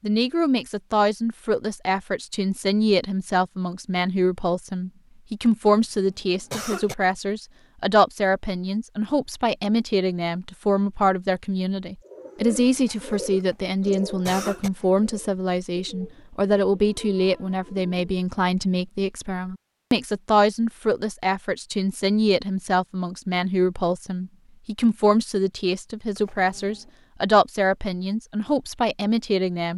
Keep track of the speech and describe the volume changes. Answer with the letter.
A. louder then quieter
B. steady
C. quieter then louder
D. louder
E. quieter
B.